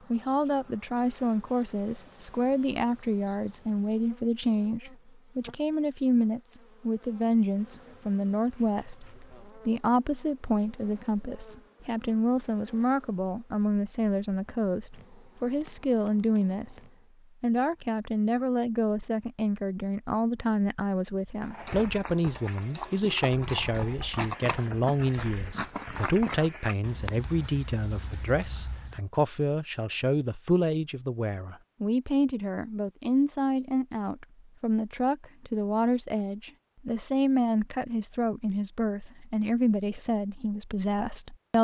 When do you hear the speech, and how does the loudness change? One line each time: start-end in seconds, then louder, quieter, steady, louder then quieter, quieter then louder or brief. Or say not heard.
0.1-16.8 steady
17.4-41.5 steady.